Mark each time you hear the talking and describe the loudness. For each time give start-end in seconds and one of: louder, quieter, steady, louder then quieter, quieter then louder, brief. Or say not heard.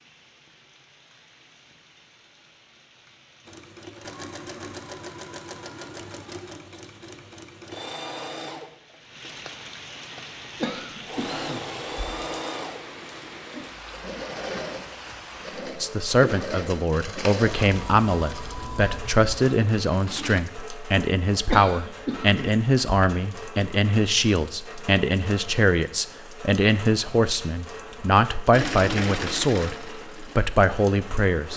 15.8-31.5 steady.